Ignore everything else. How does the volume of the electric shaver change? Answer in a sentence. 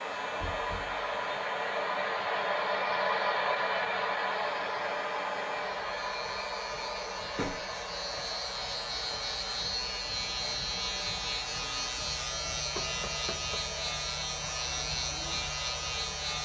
The loudness of the electric shaver goes up.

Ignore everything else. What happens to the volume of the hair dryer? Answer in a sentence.
The loudness of the hair dryer goes down.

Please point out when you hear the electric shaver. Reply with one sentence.
You can hear the electric shaver from 0.0 to 16.3 s.